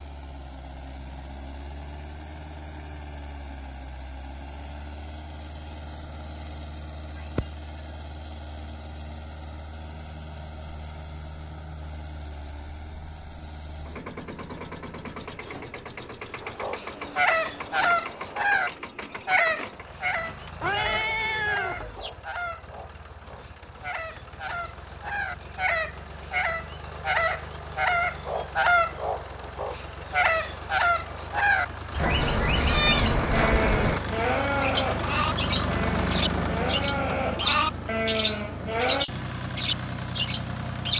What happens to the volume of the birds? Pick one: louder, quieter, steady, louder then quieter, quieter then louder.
quieter then louder.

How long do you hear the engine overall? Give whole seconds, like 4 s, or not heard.
41 s.